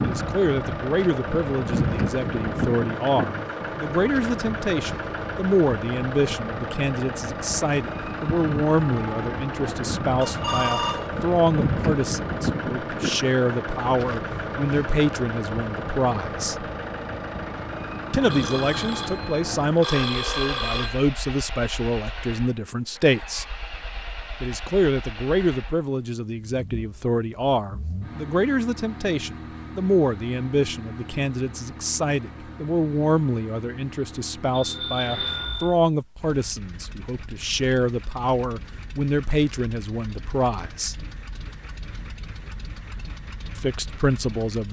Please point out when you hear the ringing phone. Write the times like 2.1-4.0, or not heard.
10.2-11.1, 18.3-21.1, 34.5-35.8.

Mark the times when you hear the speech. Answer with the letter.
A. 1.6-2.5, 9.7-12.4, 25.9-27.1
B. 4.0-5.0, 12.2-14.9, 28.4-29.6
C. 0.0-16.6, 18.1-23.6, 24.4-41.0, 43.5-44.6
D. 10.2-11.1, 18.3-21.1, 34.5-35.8
C.